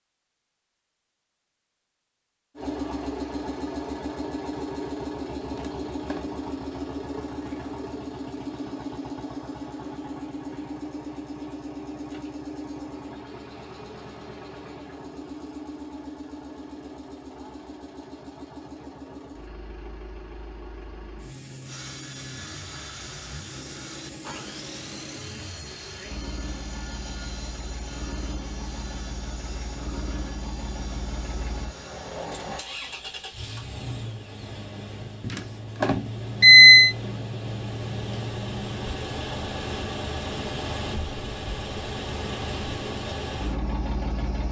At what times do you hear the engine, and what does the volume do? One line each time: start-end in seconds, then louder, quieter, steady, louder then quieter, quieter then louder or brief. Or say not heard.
2.5-44.4 quieter then louder.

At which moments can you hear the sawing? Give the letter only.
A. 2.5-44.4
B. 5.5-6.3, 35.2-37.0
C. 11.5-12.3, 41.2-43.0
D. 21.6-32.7
D.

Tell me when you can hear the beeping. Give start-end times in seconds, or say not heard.
5.5-6.3, 35.2-37.0.